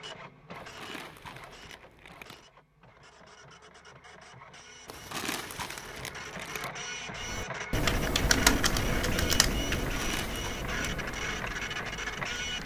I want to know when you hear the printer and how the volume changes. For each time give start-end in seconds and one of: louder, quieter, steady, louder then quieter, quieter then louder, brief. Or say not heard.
0.0-12.6 louder.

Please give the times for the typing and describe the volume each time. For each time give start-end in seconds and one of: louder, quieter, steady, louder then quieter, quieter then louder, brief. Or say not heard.
7.2-12.6 quieter.